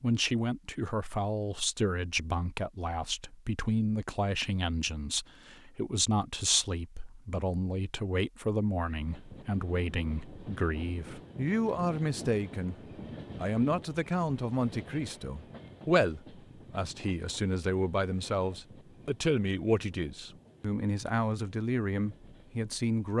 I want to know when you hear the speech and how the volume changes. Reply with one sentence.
You can hear the speech from 0.0 to 12.8 s, at a steady volume; and from 13.3 to 23.1 s, at a steady volume.